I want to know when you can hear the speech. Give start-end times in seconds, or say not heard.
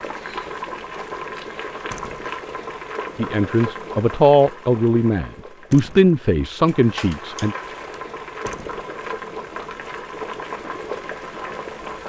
3.1-7.5.